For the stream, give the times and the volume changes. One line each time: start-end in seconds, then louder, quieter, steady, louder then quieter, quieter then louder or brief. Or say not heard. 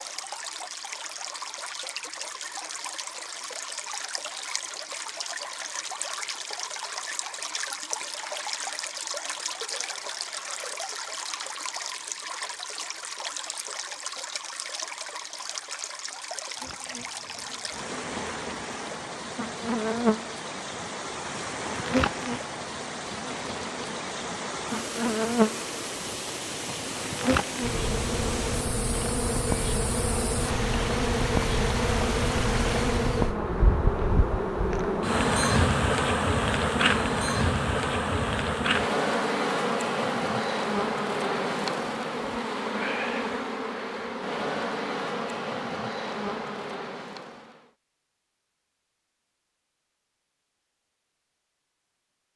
0.0-33.4 steady.